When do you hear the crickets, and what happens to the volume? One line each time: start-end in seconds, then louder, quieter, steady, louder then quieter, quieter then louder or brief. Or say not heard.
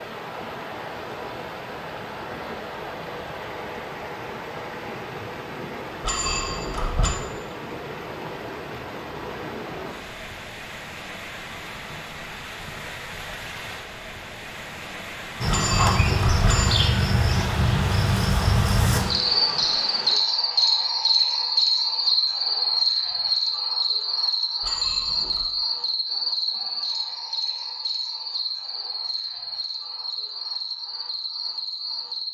15.4-32.2 quieter.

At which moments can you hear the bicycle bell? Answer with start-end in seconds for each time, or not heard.
6.0-7.2, 15.5-16.6, 24.6-25.5.